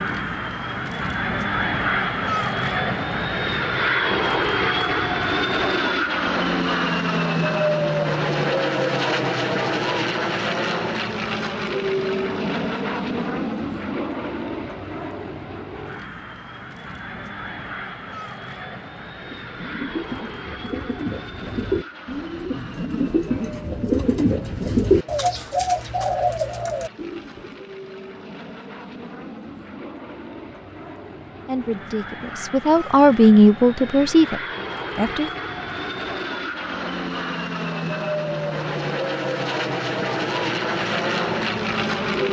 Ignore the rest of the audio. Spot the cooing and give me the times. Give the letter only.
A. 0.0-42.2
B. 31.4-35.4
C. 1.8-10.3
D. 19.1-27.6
D.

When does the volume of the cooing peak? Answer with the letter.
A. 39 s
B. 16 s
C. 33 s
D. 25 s
D.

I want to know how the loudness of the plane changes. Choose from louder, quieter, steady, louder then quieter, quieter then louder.
quieter then louder.